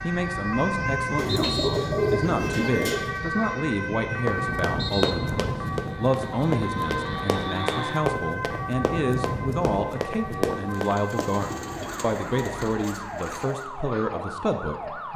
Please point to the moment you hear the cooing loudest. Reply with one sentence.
The loudest moment of the cooing is at 2 seconds.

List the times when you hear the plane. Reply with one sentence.
The plane can be heard from 0.0 to 10.7 s.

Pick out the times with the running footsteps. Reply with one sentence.
You can hear the running footsteps from 4.2 to 11.3 s.